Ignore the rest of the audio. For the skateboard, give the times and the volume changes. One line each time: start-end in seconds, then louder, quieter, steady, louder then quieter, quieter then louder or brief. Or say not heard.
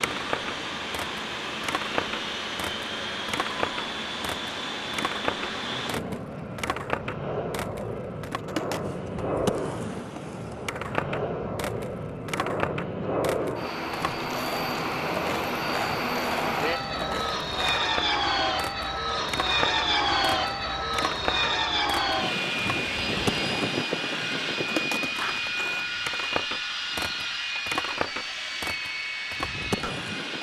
0.0-30.3 steady.